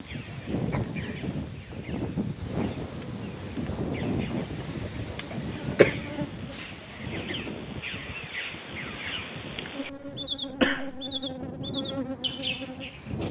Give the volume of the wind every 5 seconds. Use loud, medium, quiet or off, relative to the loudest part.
loud, medium, medium.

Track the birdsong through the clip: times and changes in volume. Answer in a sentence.
You can hear the birdsong from 0.0 to 13.2 s, getting louder.